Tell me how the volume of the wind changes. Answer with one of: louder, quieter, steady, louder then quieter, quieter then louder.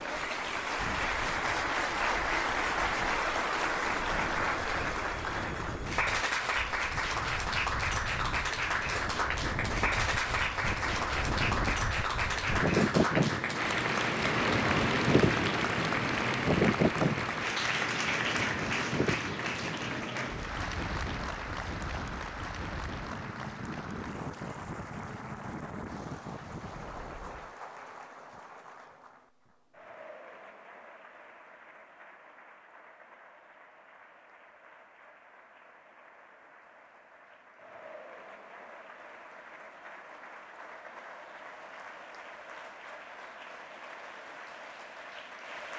louder then quieter.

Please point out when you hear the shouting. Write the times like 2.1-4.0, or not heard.
not heard.